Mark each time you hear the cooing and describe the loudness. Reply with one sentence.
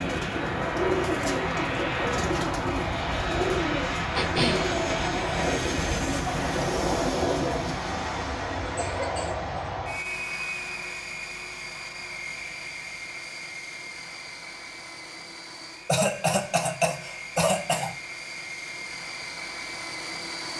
You can hear the cooing from 0.0 to 7.8 s, at a steady volume.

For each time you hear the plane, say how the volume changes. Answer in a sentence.
The plane can be heard from 0.0 to 20.5 s, getting quieter.